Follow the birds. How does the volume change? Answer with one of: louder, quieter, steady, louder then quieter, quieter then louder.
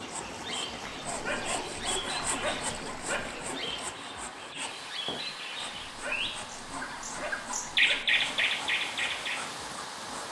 louder.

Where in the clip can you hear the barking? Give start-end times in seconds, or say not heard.
0.8-3.5, 5.6-8.2.